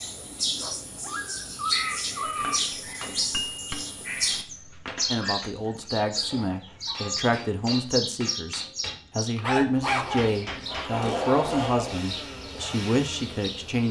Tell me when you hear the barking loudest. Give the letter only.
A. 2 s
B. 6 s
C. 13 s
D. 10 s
D.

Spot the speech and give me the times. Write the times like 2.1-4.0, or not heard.
5.1-13.8.